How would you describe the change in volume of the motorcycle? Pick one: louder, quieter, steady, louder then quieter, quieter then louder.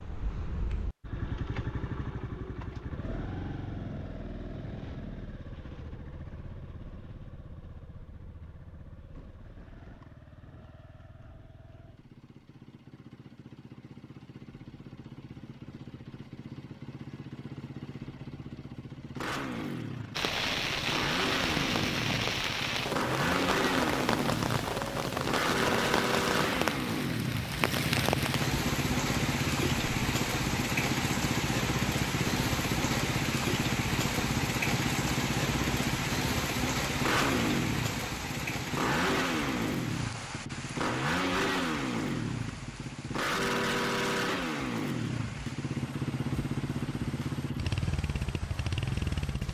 louder.